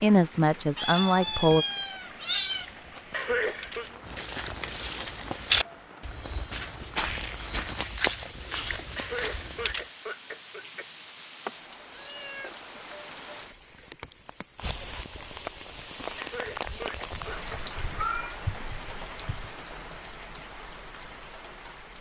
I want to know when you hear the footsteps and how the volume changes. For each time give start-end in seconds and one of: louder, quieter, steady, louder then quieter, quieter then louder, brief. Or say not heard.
2.5-9.8 louder then quieter.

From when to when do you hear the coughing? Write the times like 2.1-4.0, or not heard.
3.1-3.9, 8.9-10.9, 16.1-18.1.